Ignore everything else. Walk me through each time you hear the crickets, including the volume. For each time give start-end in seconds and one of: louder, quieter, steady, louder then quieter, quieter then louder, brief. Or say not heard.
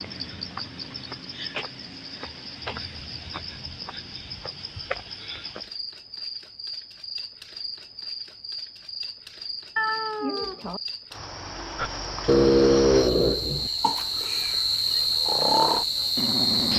0.0-16.7 louder.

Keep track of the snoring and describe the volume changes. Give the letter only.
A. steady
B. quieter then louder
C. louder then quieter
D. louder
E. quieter
B.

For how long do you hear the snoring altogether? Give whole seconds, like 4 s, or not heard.
5 s.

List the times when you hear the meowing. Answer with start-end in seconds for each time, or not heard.
9.8-10.8.